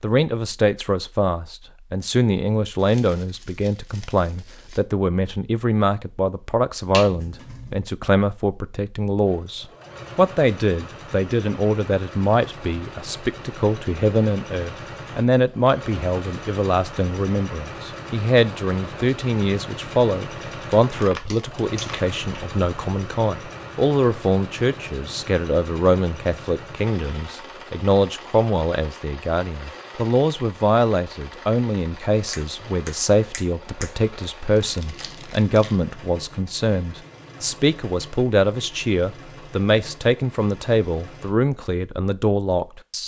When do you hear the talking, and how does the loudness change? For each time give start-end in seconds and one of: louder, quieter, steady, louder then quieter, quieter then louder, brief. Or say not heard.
0.0-43.0 steady.